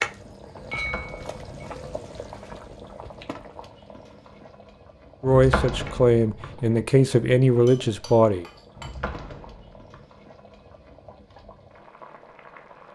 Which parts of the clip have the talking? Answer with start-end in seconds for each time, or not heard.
5.2-8.4.